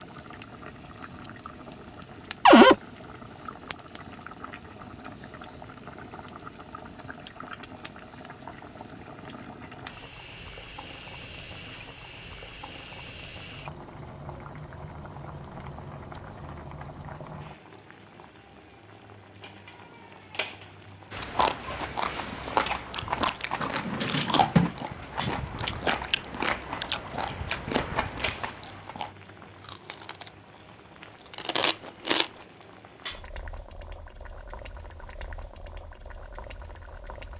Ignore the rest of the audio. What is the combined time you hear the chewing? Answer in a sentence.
You can hear the chewing for 11 seconds altogether.